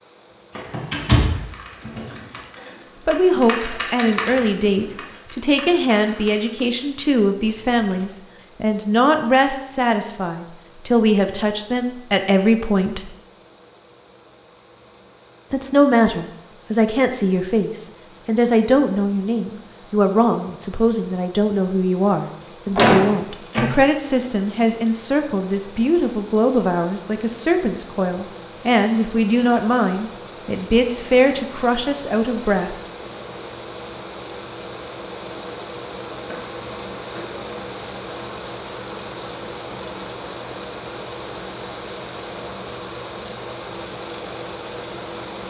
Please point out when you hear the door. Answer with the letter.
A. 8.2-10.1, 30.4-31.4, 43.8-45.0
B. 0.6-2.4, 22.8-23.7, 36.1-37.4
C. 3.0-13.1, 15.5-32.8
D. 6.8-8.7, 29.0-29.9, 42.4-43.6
B.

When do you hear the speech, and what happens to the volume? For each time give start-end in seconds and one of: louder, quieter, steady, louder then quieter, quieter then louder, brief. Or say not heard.
3.0-13.1 steady
15.5-32.8 steady.